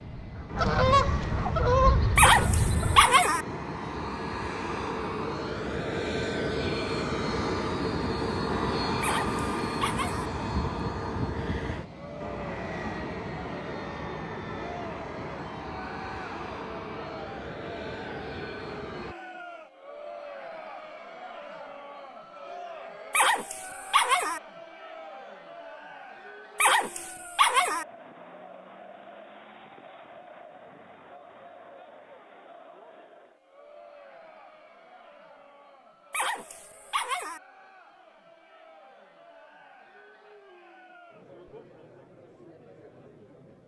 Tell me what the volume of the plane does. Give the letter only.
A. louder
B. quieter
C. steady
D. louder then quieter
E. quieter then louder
D.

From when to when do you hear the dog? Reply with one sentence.
The dog can be heard from 2.1 to 3.5 s, from 9.0 to 10.3 s, from 23.1 to 24.4 s, from 26.6 to 27.9 s and from 36.1 to 37.4 s.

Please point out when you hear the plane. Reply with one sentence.
You can hear the plane from 0.0 to 19.1 s.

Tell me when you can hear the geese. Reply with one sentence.
The geese can be heard from 0.0 to 3.0 s.